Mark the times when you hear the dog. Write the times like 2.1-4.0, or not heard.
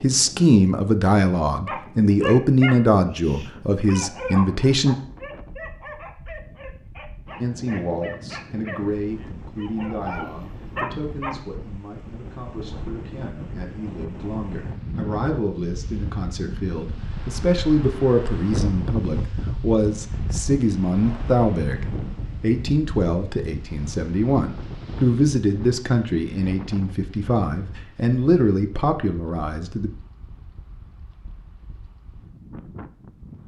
1.6-11.3.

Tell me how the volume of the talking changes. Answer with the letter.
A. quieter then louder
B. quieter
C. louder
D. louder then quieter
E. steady
A.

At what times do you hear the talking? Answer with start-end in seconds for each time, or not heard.
0.0-5.0, 7.4-29.9.